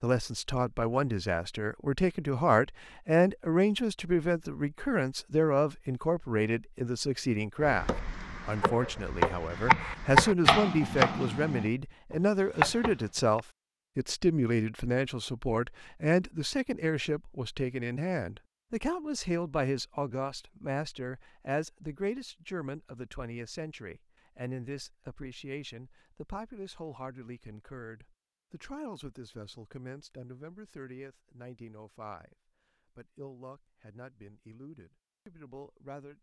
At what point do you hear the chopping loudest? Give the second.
10 s.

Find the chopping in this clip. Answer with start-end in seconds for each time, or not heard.
7.5-13.4.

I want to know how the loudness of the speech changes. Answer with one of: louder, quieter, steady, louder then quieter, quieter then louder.
quieter.